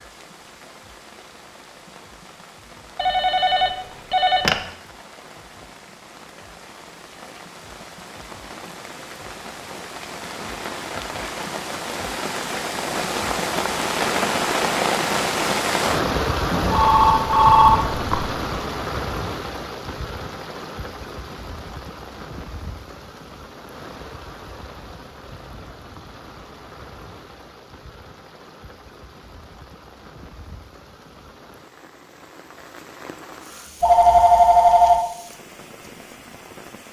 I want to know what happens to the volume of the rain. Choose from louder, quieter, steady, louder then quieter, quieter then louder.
louder then quieter.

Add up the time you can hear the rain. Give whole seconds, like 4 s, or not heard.
37 s.